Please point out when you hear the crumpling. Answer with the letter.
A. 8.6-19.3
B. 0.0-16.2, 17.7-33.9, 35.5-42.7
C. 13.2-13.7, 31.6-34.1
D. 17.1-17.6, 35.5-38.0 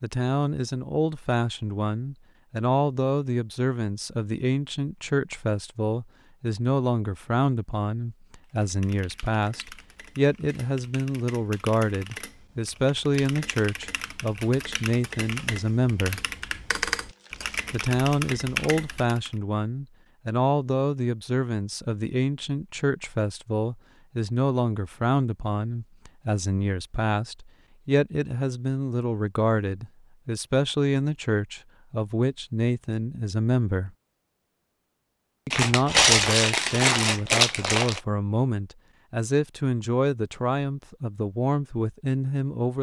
D.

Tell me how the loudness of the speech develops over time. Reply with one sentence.
The volume of the speech stays about the same.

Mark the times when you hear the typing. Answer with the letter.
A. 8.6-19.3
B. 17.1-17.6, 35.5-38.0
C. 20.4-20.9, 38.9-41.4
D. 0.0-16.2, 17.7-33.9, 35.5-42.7
A.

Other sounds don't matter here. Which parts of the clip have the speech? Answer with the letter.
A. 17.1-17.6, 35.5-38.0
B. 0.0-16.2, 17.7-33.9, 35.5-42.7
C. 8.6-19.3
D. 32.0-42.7
B.